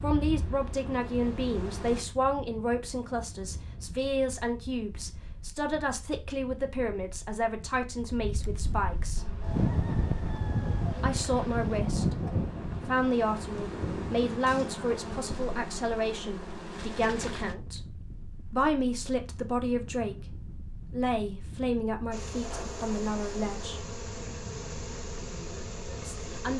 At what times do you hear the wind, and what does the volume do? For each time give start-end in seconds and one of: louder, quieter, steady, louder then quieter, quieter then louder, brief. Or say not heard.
0.0-26.5 louder then quieter.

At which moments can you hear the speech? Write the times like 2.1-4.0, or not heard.
0.0-9.4, 11.0-23.8, 26.0-26.5.